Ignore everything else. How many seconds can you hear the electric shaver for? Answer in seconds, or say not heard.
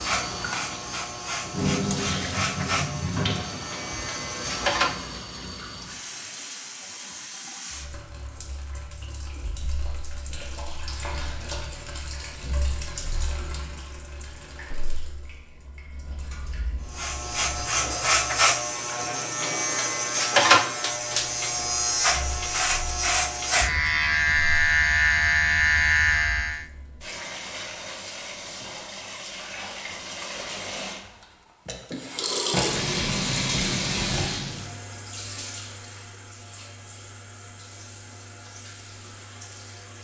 15 s.